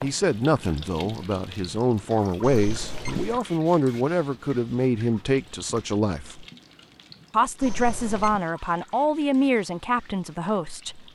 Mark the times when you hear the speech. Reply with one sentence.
You can hear the speech from 0.0 to 6.5 s and from 7.3 to 11.1 s.